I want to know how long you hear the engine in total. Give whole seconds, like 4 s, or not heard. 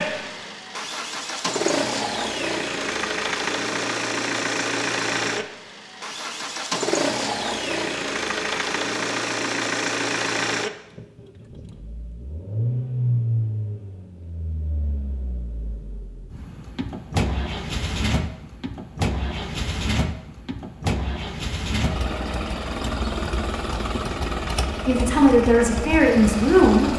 27 s.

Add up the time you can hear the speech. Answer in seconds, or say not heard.
2 s.